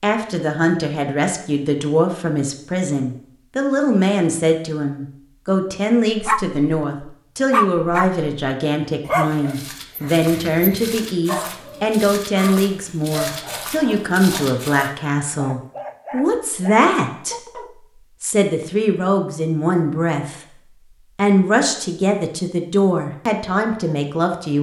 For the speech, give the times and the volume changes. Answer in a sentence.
The speech can be heard from 0.0 to 24.5 s, at a steady volume.